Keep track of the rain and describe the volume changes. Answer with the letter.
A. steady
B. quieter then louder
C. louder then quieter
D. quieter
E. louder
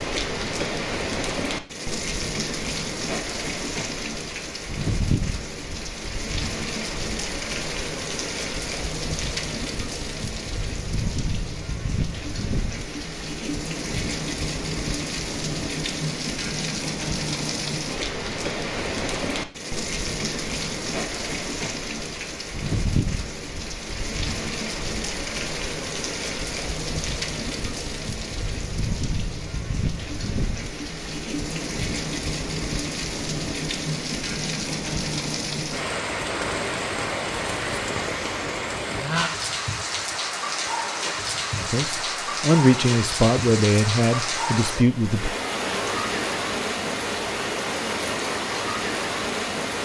A.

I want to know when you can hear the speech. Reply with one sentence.
The speech can be heard from 41.5 to 45.3 s.